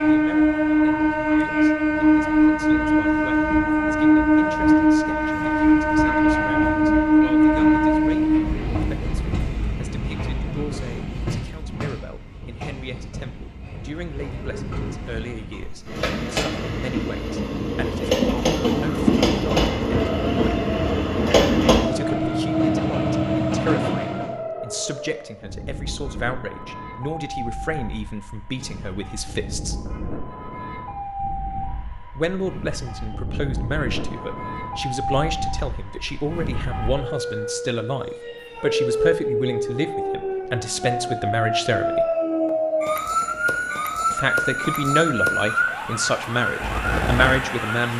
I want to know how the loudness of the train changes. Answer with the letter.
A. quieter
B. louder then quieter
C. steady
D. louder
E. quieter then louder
E.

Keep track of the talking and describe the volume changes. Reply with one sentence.
The volume of the talking goes up.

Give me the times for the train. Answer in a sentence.
You can hear the train from 0.0 to 24.4 s.